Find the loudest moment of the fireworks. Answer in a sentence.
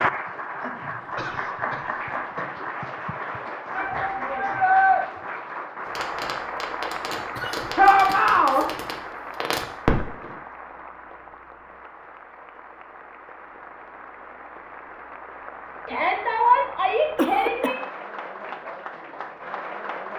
The loudest moment of the fireworks is at 10 seconds.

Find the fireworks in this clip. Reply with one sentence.
You can hear the fireworks from 5.8 to 10.3 s.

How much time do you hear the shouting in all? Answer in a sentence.
You can hear the shouting for 4 seconds altogether.